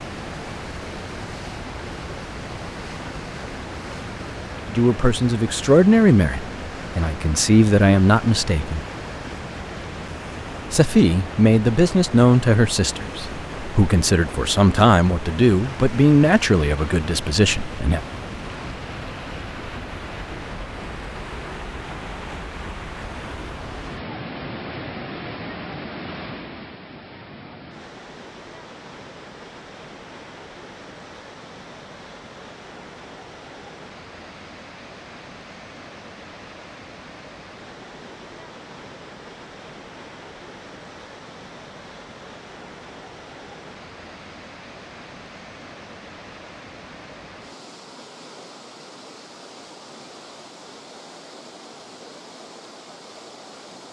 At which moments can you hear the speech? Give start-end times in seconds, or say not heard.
4.7-8.8, 10.7-18.0.